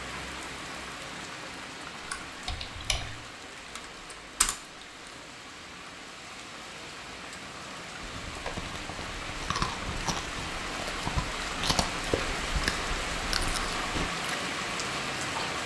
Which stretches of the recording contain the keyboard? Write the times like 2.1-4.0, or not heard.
2.0-5.1.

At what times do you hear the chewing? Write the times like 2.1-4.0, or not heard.
8.0-15.6.